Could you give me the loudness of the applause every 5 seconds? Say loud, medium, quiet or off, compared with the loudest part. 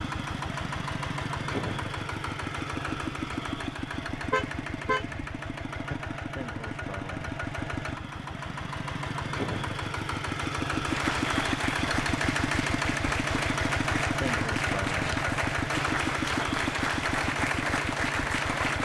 off, off, loud, loud.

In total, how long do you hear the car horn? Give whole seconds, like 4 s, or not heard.
2 s.